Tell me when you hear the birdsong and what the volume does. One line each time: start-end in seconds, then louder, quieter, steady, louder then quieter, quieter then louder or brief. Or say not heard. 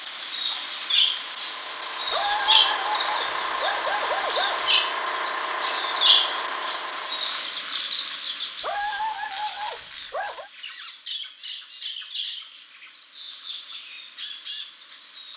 0.0-15.3 quieter.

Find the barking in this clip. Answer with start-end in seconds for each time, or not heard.
2.1-4.6, 8.6-10.5.